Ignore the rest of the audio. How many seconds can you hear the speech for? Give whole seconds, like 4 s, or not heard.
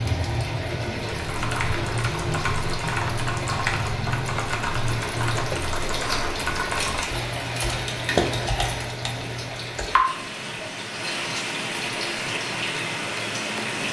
not heard.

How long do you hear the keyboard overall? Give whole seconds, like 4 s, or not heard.
9 s.